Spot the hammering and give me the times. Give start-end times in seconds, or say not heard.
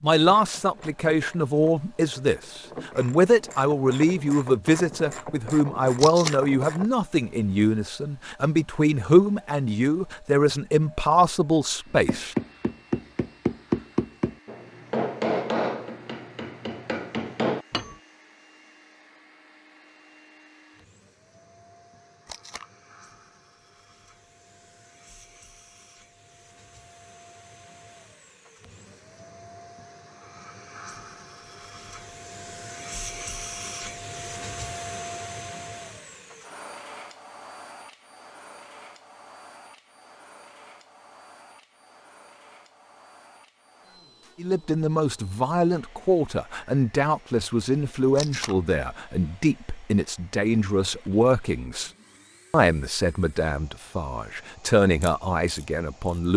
12.1-17.9.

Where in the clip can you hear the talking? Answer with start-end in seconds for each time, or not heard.
0.0-12.3, 44.4-51.9, 52.5-56.3.